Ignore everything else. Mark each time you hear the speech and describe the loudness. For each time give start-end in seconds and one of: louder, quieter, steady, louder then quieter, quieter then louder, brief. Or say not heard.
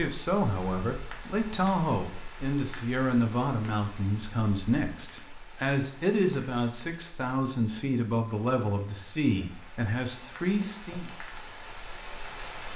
0.0-11.1 steady.